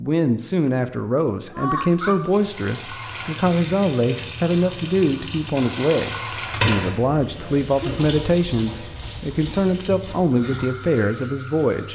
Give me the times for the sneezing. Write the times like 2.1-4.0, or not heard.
1.5-2.2, 7.3-8.1.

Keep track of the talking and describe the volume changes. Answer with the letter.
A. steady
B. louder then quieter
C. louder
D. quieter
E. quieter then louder
A.